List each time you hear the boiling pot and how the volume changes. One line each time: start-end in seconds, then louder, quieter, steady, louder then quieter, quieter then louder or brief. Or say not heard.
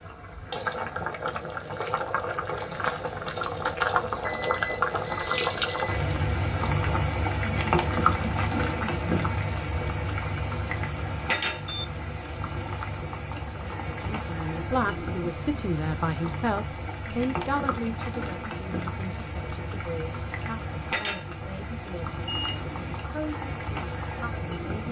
0.0-24.8 quieter.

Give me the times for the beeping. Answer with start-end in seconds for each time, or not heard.
4.2-6.0, 11.7-12.3, 22.2-23.1.